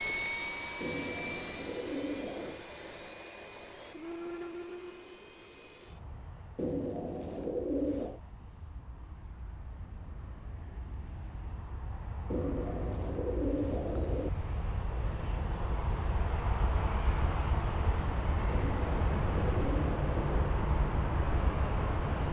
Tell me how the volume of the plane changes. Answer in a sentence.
The loudness of the plane goes down, then up.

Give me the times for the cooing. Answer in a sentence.
You can hear the cooing from 0.8 to 2.6 s, from 6.5 to 8.2 s, from 12.3 to 14.3 s and from 18.4 to 20.5 s.